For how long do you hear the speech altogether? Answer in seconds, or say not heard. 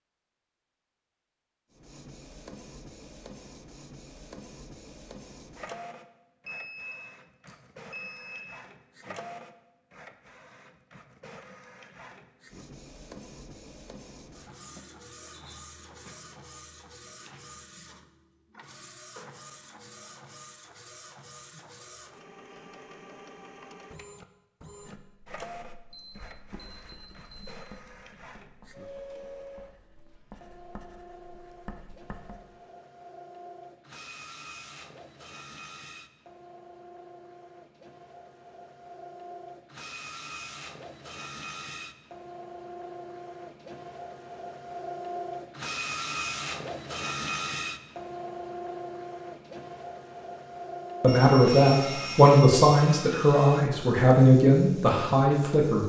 5 s.